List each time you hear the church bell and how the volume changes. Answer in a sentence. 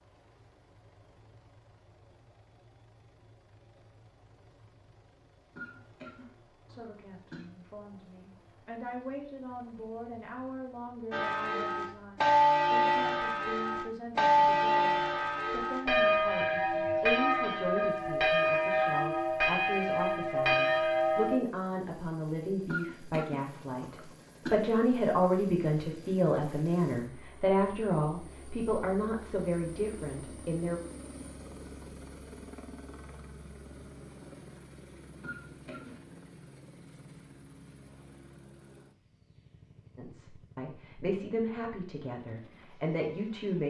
The church bell can be heard from 11.1 to 21.4 s, at a steady volume.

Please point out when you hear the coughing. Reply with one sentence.
You can hear the coughing from 5.5 to 7.5 s, from 22.6 to 24.6 s and from 35.2 to 36.0 s.